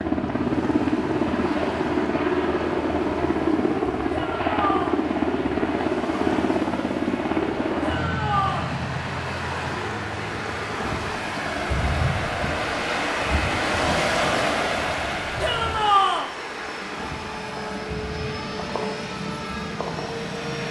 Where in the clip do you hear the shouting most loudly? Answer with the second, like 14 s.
16 s.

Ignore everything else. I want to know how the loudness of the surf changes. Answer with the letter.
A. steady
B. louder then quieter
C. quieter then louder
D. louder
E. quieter
B.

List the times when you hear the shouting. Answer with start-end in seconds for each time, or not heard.
4.1-5.0, 7.8-8.7, 15.4-16.3.